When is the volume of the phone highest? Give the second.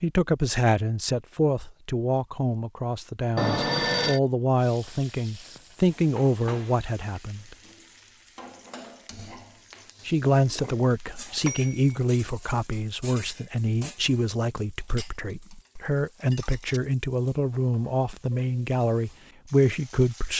4 s.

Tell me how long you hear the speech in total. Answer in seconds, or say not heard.
18 s.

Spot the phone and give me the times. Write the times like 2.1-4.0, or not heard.
3.4-4.2, 11.4-12.0.